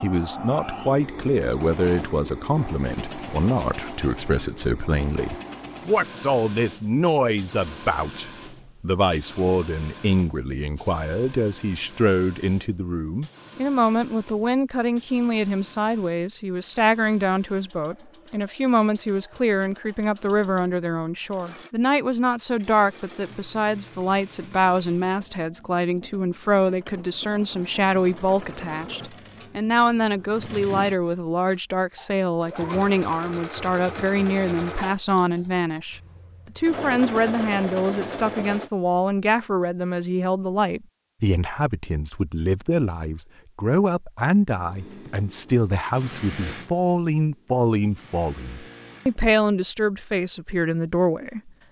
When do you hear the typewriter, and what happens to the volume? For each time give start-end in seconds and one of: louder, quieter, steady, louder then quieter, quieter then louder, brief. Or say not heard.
not heard.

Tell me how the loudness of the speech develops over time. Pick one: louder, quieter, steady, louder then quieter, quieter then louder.
steady.